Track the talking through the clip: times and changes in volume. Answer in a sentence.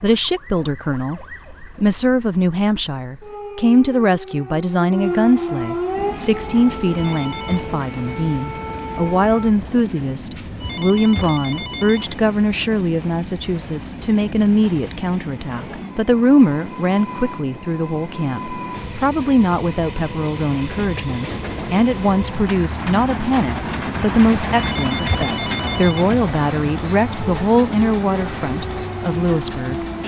The talking can be heard from 0.0 to 29.9 s, at a steady volume.